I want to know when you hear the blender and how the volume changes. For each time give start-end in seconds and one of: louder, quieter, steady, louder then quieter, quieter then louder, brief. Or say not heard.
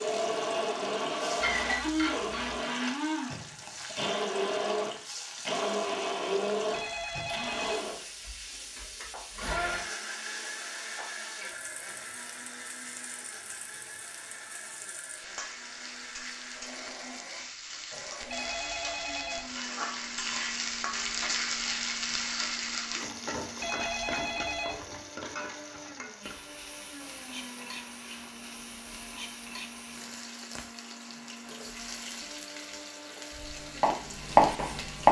0.0-35.0 quieter.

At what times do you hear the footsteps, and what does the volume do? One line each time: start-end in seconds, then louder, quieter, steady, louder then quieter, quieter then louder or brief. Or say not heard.
not heard.